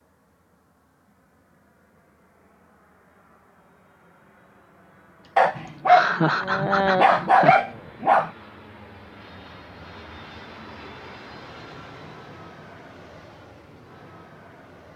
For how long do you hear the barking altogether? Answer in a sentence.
You can hear the barking for 3 seconds altogether.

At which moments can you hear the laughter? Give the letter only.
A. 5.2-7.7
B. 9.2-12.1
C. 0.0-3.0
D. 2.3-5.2
A.